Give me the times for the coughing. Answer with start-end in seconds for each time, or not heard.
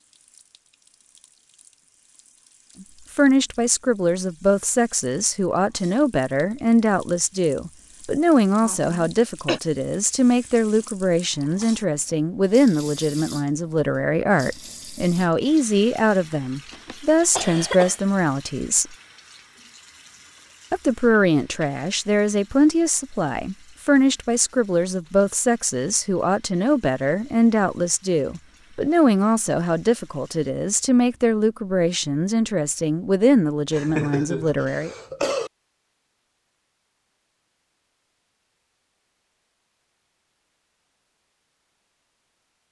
8.6-9.6, 16.7-18.0, 33.7-35.5.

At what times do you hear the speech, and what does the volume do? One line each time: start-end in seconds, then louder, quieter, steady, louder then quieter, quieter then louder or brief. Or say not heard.
3.1-18.9 steady
20.7-34.9 steady.